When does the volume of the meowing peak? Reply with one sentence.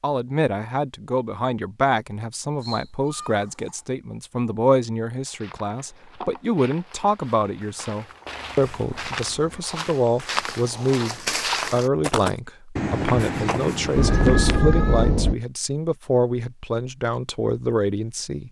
The volume of the meowing peaks at 14 seconds.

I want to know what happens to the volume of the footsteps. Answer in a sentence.
The volume of the footsteps goes up.